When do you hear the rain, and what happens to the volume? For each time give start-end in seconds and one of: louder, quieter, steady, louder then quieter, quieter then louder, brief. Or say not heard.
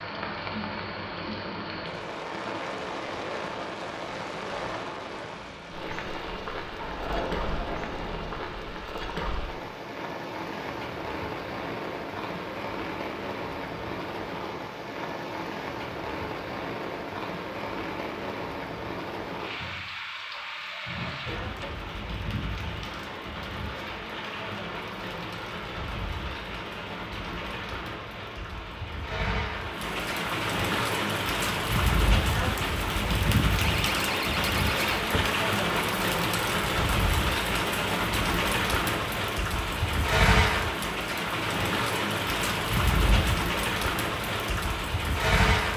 0.0-45.7 louder.